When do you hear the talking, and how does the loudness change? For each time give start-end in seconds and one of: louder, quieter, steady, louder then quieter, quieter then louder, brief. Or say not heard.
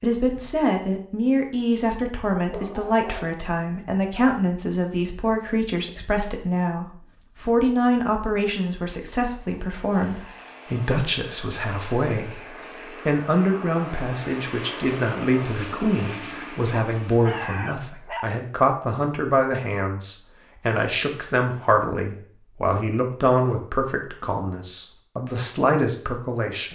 0.0-26.7 steady.